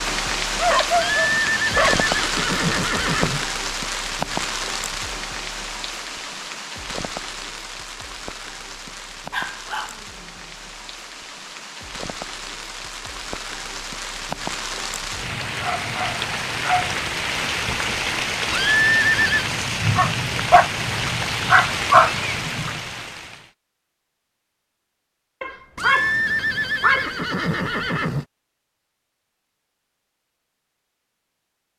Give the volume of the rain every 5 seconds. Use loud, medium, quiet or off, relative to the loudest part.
loud, medium, medium, loud, loud, off, off.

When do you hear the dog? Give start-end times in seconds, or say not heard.
0.6-2.0, 9.3-10.2, 15.6-16.9, 19.9-22.7, 25.4-27.1.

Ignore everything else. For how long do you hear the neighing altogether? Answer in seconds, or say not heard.
6 s.